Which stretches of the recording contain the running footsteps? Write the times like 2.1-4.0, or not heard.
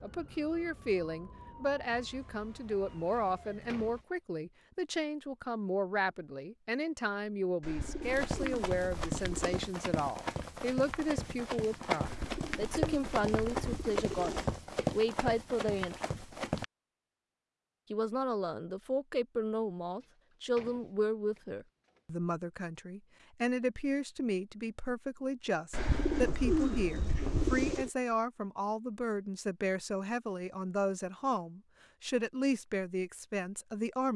8.0-16.6.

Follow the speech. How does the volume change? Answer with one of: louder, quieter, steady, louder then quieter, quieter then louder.
steady.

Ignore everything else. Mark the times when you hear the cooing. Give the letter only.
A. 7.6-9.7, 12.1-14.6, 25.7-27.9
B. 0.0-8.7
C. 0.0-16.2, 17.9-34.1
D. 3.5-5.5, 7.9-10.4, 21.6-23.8
A.